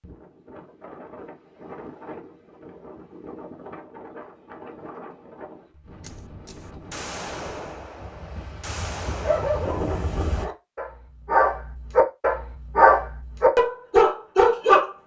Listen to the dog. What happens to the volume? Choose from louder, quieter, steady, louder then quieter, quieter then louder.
louder.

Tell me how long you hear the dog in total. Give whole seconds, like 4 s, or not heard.
6 s.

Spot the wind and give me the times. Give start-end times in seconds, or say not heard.
0.0-10.4.